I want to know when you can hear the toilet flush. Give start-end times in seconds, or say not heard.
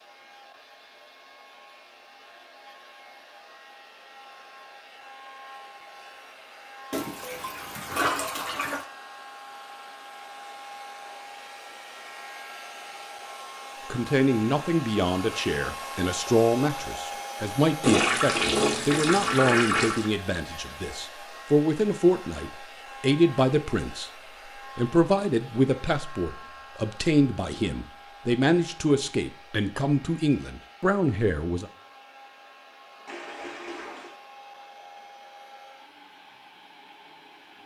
6.9-8.8, 17.8-20.1, 33.0-34.1.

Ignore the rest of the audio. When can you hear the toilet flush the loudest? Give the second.
18 s.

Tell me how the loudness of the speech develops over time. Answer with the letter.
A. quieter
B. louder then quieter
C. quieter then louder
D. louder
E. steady
E.